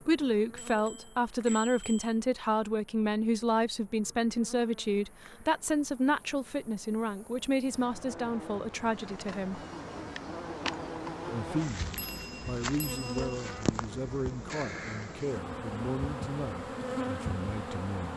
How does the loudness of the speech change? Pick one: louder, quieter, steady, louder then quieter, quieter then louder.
quieter.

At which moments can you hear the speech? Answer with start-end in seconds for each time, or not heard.
0.1-9.7, 11.2-18.1.